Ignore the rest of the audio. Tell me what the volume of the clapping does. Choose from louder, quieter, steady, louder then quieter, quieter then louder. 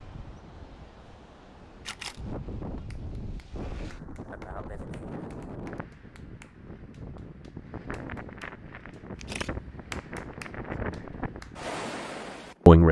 quieter then louder.